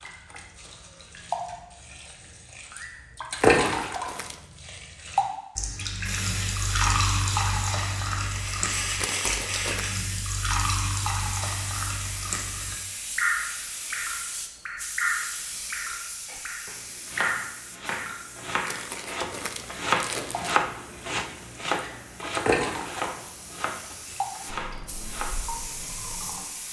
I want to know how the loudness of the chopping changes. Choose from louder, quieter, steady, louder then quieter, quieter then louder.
louder then quieter.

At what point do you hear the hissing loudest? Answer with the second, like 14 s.
9 s.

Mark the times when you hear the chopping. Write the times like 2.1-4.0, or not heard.
16.2-25.3.